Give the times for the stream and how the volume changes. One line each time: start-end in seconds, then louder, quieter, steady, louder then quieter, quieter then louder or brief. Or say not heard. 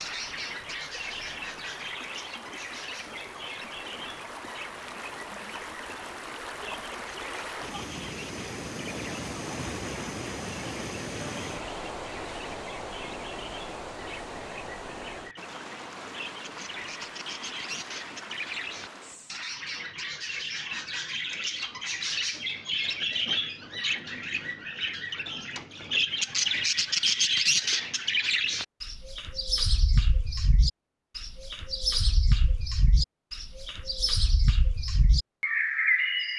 0.0-19.4 louder then quieter.